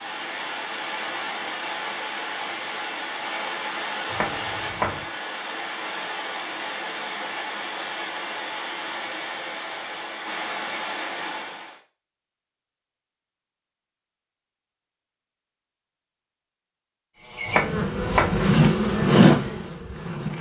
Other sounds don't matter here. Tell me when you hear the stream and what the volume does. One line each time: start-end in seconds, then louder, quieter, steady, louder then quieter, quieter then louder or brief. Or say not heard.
0.0-11.8 steady.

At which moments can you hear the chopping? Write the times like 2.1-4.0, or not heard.
4.1-5.0, 17.4-18.4.